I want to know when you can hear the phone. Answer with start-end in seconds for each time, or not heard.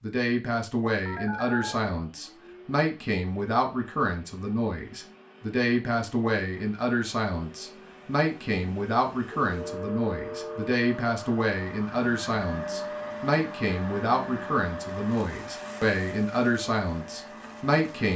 1.1-1.8, 9.4-10.7.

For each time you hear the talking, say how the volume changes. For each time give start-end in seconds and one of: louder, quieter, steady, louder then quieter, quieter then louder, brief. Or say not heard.
0.0-18.1 steady.